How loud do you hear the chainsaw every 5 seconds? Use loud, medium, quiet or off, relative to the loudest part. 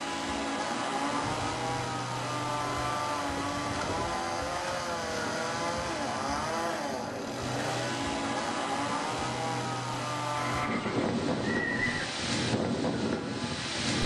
loud, loud, medium.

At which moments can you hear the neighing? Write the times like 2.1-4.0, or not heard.
10.4-12.1.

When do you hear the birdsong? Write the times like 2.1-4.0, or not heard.
not heard.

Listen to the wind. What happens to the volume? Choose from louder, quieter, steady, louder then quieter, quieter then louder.
louder.